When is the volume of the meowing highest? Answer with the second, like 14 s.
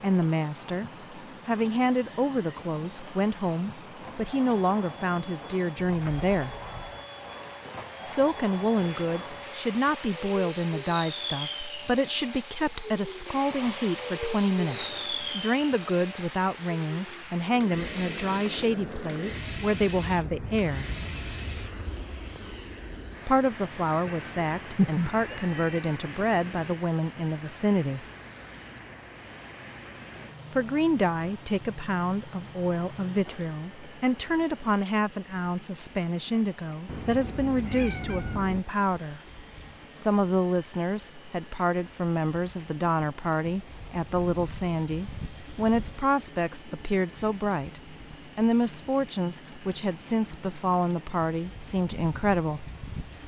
25 s.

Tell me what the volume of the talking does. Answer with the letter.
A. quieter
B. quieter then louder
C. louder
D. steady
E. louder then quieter
D.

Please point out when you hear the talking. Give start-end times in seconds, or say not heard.
0.0-6.5, 8.1-20.9, 23.2-28.1, 30.5-39.2, 40.0-52.7.